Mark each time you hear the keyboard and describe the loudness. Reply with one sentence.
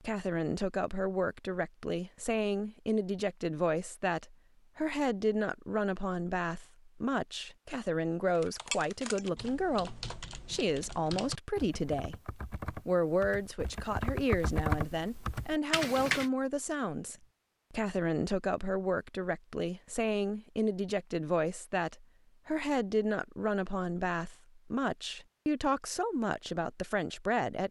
The keyboard can be heard from 8.3 to 16.3 s, getting louder.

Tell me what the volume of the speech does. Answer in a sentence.
The loudness of the speech stays about the same.